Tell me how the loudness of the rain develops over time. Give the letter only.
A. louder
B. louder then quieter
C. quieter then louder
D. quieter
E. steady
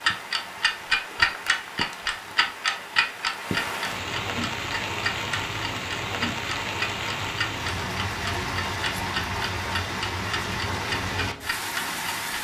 A.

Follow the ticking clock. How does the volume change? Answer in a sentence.
The volume of the ticking clock goes down.